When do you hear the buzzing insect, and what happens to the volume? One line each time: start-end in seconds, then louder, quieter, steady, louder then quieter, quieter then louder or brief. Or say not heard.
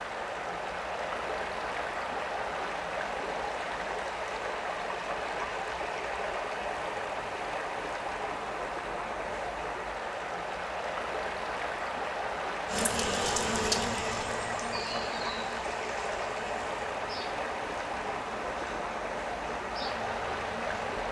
12.7-21.0 quieter.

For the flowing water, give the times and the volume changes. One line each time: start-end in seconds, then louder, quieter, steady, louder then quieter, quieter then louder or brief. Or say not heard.
0.0-21.0 steady.